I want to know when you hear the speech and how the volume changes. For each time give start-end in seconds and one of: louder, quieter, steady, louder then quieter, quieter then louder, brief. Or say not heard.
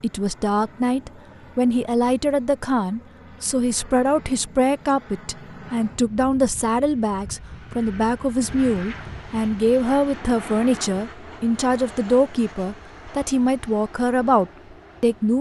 0.0-15.3 steady.